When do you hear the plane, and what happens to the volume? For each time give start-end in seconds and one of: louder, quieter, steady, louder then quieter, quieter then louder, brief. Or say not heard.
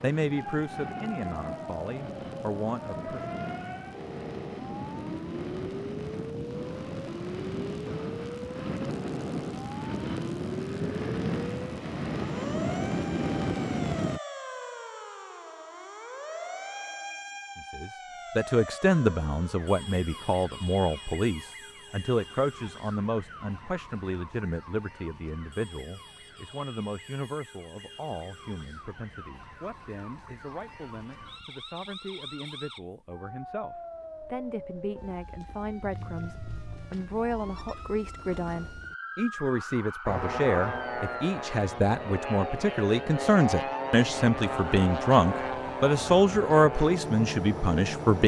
0.0-14.2 louder
40.0-48.2 steady.